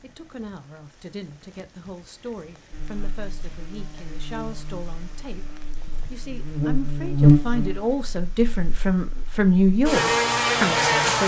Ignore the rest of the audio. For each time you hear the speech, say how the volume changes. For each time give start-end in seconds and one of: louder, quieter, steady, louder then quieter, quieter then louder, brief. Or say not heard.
0.0-11.2 louder.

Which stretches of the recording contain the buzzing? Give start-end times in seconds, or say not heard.
2.7-11.2.